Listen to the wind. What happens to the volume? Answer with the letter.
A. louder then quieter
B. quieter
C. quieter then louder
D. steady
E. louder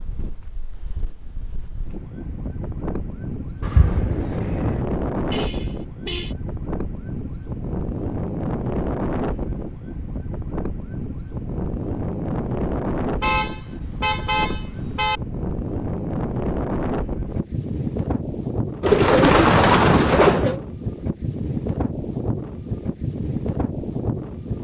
D.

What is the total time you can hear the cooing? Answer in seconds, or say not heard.
3 s.